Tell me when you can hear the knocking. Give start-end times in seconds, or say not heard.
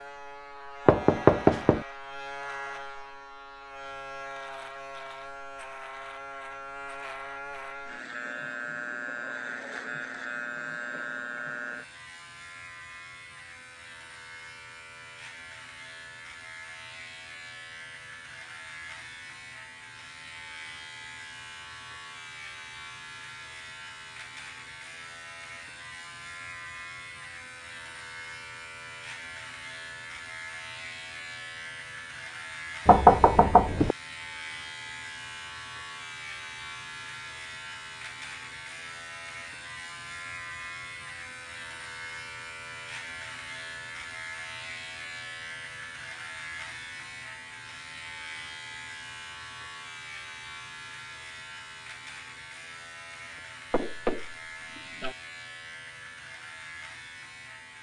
0.8-1.8, 32.9-34.0, 53.7-55.1.